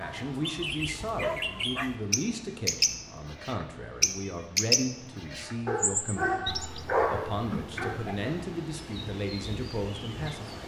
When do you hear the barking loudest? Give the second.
7 s.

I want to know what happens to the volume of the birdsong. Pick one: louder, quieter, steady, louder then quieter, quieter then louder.
louder then quieter.